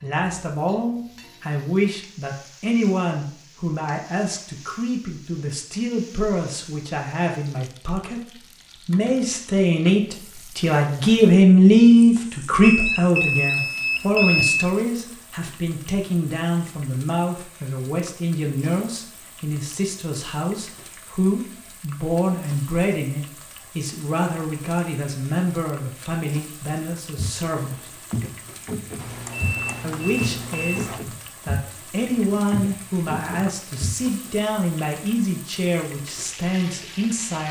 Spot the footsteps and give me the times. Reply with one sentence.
The footsteps can be heard from 27.1 to 34.3 s.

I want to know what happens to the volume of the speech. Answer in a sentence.
The loudness of the speech goes up, then down.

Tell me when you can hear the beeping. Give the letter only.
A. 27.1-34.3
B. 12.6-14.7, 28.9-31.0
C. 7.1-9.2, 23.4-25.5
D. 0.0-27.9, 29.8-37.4
B.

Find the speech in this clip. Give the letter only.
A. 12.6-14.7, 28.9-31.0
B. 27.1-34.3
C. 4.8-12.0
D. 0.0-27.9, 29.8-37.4
D.